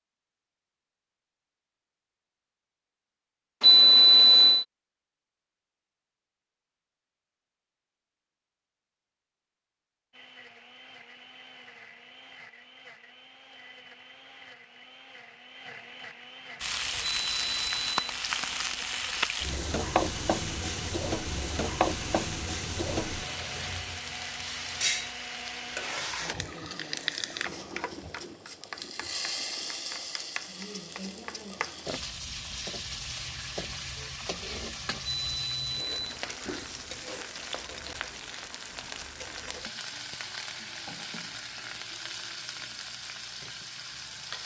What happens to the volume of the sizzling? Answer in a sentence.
The volume of the sizzling goes down.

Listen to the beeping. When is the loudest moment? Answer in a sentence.
The loudest moment of the beeping is at 4 seconds.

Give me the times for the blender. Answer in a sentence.
You can hear the blender from 10.1 to 26.0 s.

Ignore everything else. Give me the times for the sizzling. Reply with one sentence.
The sizzling can be heard from 16.6 to 44.4 s.